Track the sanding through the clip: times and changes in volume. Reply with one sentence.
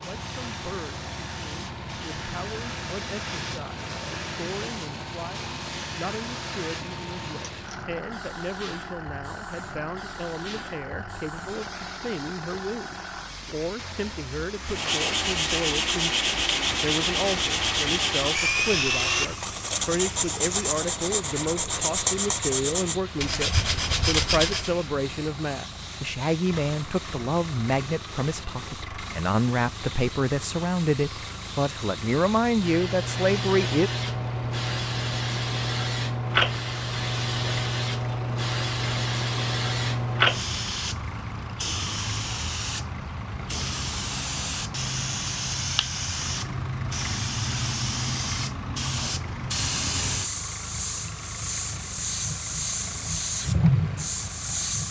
You can hear the sanding from 14.7 to 24.8 s, at a steady volume.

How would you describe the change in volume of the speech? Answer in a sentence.
The volume of the speech goes up.